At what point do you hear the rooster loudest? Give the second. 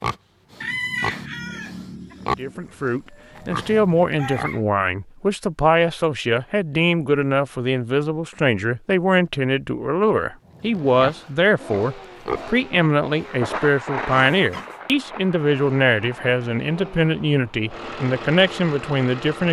1 s.